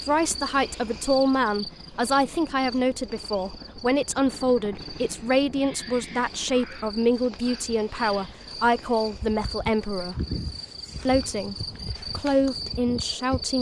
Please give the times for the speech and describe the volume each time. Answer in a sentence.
You can hear the speech from 0.1 to 10.2 s, at a steady volume; briefly from 11.1 to 11.6 s; and briefly from 12.2 to 13.5 s.